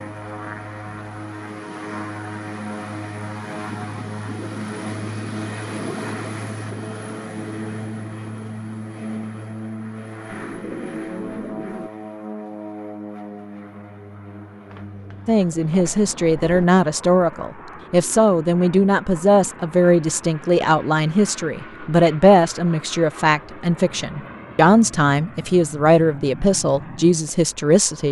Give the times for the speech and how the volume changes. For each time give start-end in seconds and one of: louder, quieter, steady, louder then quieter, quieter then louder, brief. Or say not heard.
15.2-28.0 steady.